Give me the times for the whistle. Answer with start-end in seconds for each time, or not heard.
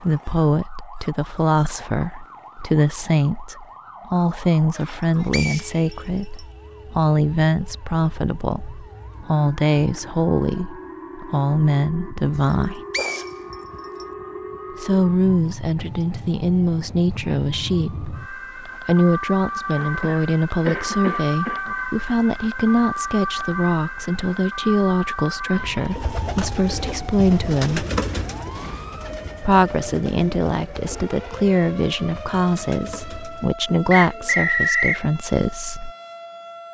5.3-6.4, 12.9-14.1, 33.9-35.0.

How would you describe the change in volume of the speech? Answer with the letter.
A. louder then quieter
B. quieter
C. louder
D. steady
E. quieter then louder
D.